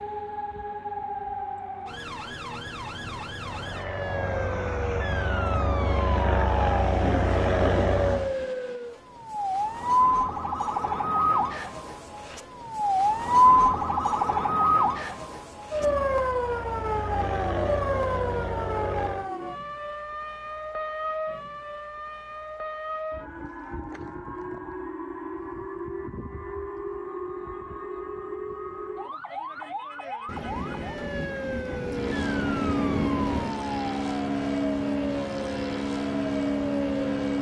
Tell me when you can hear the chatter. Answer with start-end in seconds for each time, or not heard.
not heard.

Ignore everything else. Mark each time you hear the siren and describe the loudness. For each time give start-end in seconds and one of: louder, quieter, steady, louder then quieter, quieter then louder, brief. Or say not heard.
0.0-37.0 louder then quieter.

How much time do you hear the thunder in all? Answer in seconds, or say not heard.
5 s.